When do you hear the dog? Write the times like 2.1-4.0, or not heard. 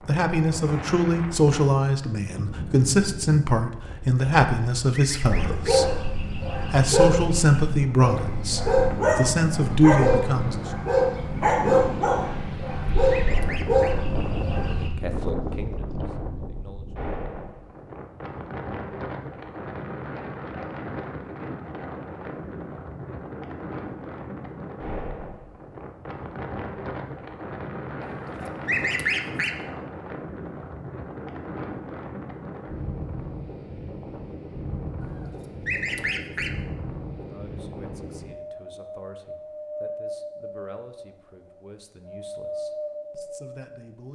5.2-14.9.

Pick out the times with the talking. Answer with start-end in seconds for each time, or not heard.
0.1-10.7, 14.7-16.9, 37.1-44.1.